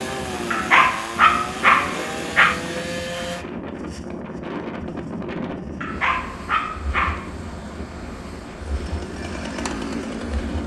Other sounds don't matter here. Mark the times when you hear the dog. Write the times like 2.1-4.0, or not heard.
0.5-2.6, 5.8-7.3.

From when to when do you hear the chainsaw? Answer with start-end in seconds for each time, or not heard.
0.0-3.5, 8.6-10.6.